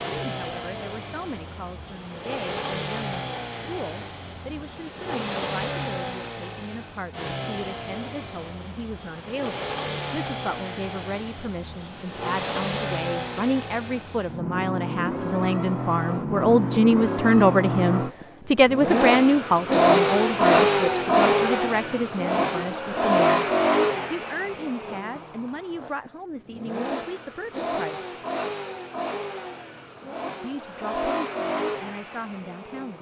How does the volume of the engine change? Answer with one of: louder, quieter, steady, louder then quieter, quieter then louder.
louder then quieter.